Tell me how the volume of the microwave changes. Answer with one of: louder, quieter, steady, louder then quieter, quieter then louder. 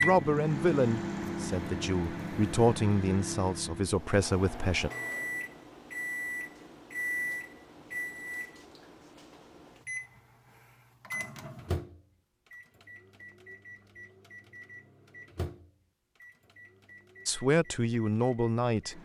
quieter.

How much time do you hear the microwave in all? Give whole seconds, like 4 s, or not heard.
19 s.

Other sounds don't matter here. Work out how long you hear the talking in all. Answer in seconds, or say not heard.
7 s.